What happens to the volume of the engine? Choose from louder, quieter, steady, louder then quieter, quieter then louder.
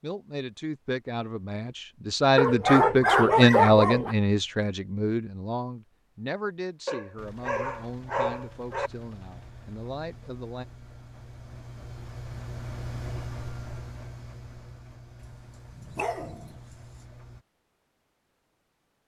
louder then quieter.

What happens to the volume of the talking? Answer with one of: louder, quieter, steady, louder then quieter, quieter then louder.
louder then quieter.